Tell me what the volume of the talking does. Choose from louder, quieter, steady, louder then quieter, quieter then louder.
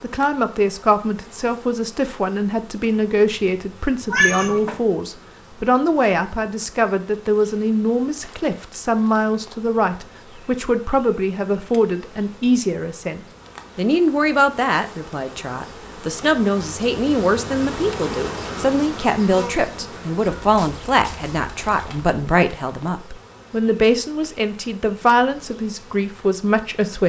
steady.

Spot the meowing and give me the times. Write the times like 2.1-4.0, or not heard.
4.1-4.8, 20.4-22.1.